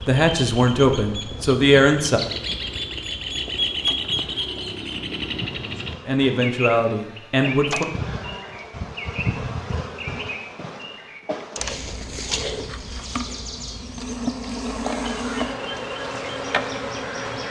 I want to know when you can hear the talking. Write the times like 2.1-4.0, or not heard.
0.0-2.2, 6.0-7.8.